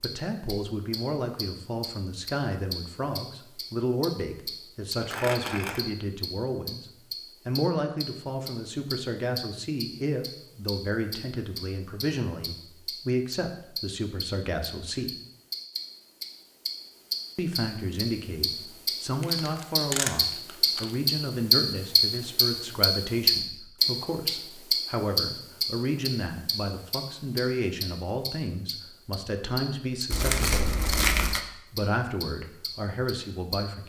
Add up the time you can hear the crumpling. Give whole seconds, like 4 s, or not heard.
4 s.